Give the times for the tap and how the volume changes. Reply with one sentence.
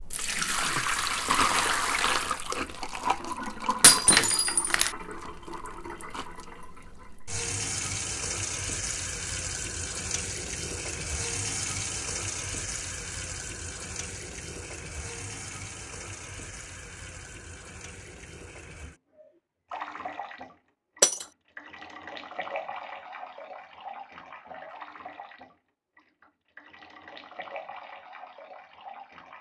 The tap can be heard from 0.0 to 29.3 s, getting quieter.